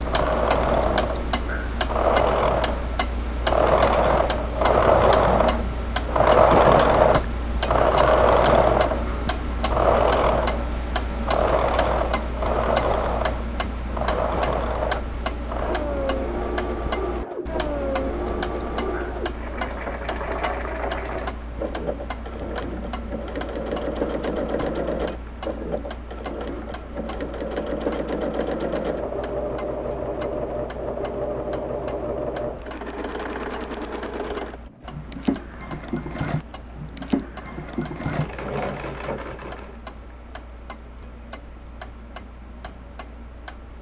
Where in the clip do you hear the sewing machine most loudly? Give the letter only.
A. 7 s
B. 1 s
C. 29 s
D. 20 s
A.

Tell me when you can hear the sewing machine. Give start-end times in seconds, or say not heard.
0.0-39.8.